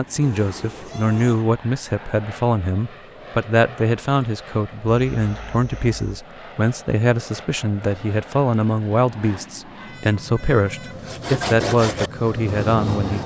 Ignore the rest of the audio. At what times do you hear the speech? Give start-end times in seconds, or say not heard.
0.0-13.2.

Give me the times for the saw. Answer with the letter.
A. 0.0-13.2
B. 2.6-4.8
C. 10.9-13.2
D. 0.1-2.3
C.